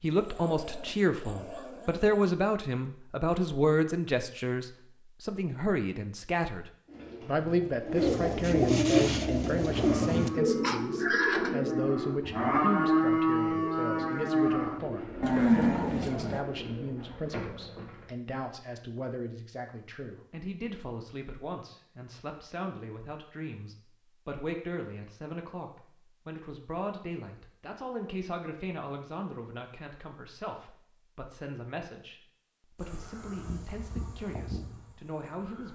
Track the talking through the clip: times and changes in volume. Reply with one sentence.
The talking can be heard from 0.0 to 35.7 s, getting quieter.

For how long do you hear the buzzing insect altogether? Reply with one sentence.
You can hear the buzzing insect for 3 seconds altogether.